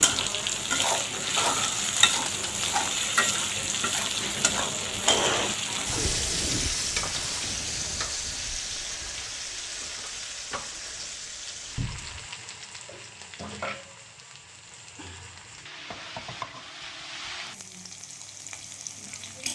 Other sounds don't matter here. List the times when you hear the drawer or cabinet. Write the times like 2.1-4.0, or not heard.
11.8-12.3.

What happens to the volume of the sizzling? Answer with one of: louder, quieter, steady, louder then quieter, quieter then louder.
quieter.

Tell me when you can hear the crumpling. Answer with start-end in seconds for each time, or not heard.
1.4-2.9.